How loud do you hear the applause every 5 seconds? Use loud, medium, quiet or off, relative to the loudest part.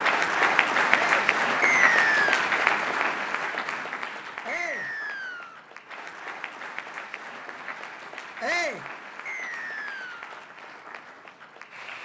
loud, quiet, quiet.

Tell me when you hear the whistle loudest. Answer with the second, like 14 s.
2 s.